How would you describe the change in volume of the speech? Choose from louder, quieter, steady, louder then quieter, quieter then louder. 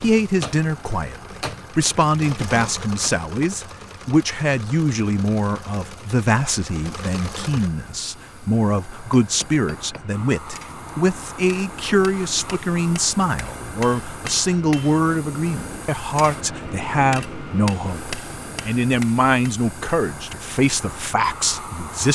steady.